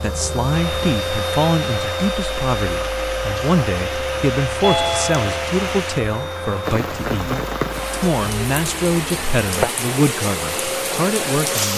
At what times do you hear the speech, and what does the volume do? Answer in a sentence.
The speech can be heard from 0.0 to 11.7 s, at a steady volume.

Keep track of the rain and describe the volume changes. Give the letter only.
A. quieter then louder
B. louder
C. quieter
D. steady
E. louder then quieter
B.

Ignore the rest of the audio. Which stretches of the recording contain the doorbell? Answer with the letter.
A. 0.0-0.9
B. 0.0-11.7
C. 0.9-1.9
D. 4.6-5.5
D.